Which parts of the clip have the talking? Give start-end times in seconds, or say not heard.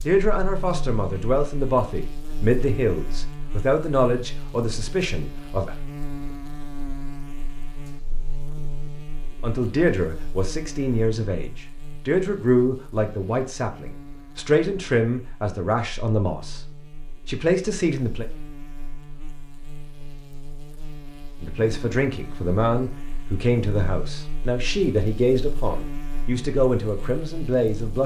0.0-5.8, 9.4-16.6, 17.2-18.2, 21.4-28.0.